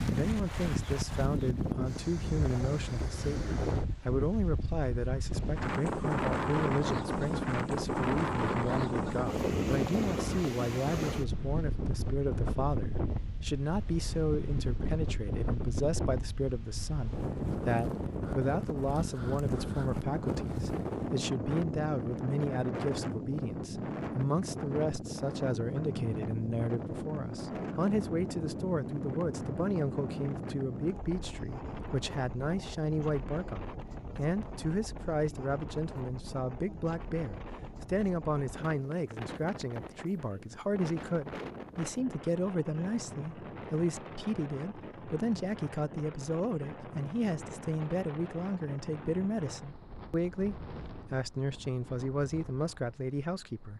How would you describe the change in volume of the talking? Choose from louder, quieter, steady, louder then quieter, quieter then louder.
steady.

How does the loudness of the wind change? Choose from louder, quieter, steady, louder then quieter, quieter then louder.
quieter.